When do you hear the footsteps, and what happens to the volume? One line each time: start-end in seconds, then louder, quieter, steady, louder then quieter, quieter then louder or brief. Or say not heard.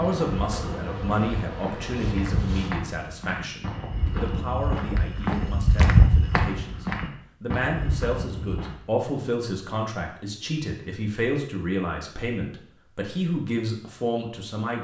0.0-8.8 louder then quieter.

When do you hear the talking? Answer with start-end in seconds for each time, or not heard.
0.0-14.7.